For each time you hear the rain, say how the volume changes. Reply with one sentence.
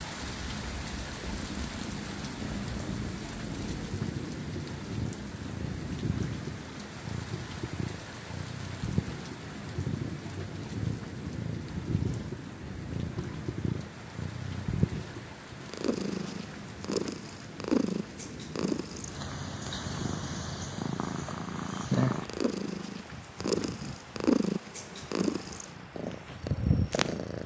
You can hear the rain from 0.0 to 27.4 s, getting quieter.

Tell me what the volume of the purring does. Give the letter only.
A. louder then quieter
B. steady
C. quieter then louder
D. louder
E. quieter
D.